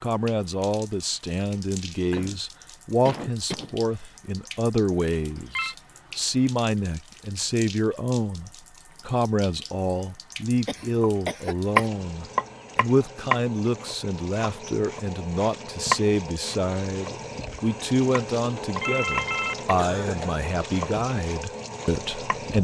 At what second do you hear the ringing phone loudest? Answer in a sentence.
The volume of the ringing phone peaks at 19 seconds.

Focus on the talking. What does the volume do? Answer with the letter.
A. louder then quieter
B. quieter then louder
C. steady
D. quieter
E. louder
C.